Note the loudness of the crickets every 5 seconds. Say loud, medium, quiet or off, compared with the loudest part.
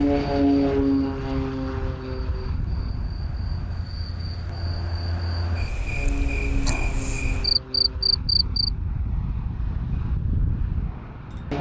quiet, loud, off.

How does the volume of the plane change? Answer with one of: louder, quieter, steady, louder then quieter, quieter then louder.
quieter then louder.